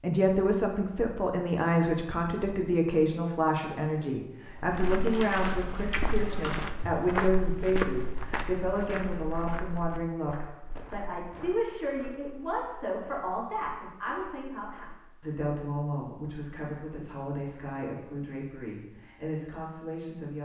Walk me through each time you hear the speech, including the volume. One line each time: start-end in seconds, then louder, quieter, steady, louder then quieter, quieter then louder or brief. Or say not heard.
0.0-20.4 quieter.